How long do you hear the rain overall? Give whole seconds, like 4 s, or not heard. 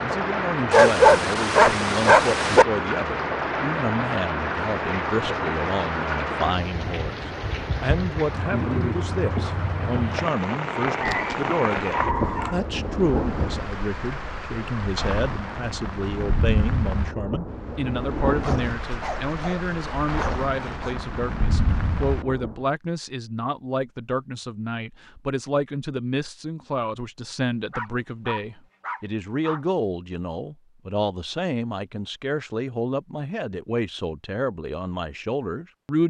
23 s.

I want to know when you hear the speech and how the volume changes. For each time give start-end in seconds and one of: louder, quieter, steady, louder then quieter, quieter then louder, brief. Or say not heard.
0.0-36.0 steady.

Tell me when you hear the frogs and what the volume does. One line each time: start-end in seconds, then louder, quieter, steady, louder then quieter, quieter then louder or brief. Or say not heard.
not heard.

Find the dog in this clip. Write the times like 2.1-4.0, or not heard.
0.7-2.6, 11.1-12.6, 18.4-20.9, 27.3-29.6.